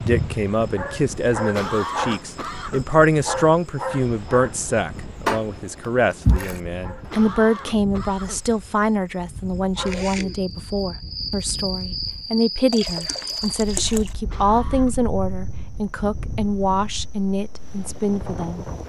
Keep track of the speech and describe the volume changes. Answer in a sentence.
The loudness of the speech stays about the same.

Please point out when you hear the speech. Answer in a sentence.
You can hear the speech from 0.0 to 18.6 s.